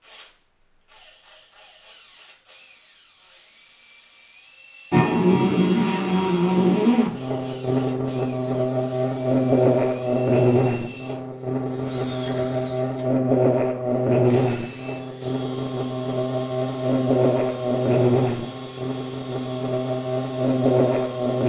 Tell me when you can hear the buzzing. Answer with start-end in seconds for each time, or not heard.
4.9-21.4.